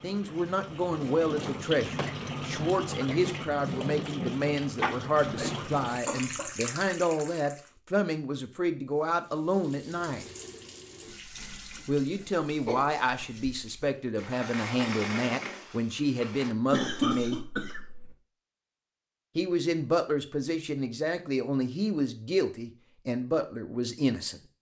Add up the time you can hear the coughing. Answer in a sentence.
You can hear the coughing for 4 seconds altogether.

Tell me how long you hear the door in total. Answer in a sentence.
You can hear the door for 3 seconds altogether.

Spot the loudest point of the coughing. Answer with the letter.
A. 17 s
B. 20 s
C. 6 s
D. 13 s
A.